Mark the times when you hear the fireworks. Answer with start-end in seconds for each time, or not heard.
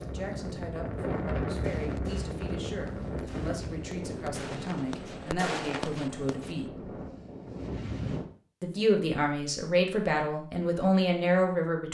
1.5-6.7.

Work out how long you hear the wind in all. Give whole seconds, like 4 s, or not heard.
8 s.